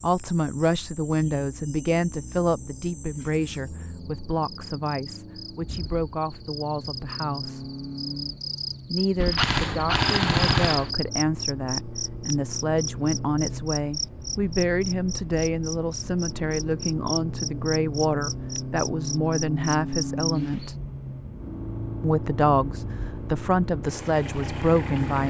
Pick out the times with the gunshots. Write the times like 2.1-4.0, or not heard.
9.2-10.9.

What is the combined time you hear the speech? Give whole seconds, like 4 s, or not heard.
23 s.